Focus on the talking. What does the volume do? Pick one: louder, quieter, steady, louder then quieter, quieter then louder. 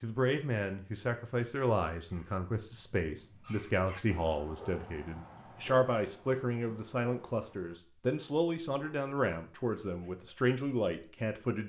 steady.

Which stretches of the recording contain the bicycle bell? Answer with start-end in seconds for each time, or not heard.
not heard.